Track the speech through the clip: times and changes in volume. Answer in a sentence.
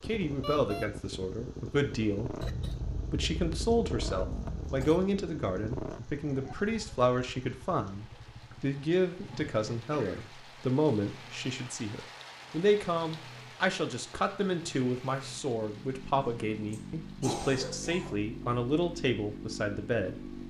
The speech can be heard from 0.0 to 20.4 s, at a steady volume.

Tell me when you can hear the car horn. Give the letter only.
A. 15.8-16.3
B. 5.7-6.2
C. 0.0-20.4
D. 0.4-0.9
D.